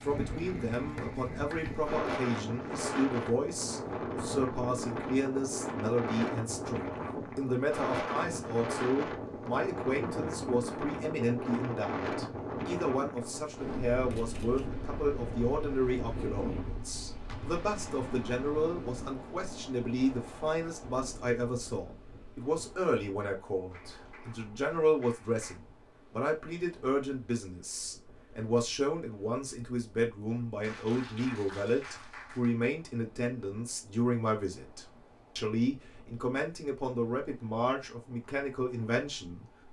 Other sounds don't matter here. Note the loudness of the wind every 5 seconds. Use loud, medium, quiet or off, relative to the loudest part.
loud, loud, loud, medium, quiet, quiet, quiet, quiet.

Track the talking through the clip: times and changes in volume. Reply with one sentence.
The talking can be heard from 0.0 to 39.5 s, at a steady volume.